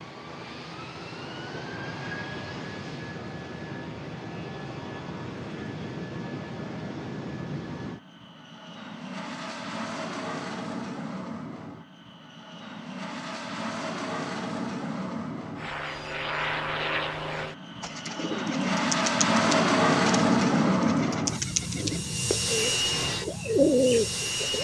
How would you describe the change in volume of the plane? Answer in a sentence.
The volume of the plane goes up.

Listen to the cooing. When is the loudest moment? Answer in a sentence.
The volume of the cooing peaks at 24 seconds.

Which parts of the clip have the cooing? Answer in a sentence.
You can hear the cooing from 17.8 to 24.5 s.